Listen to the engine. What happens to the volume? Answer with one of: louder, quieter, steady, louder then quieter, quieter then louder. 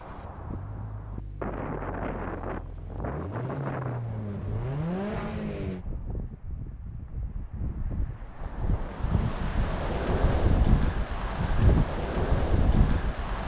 louder.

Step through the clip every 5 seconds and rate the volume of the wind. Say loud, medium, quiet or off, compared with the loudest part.
medium, medium, loud.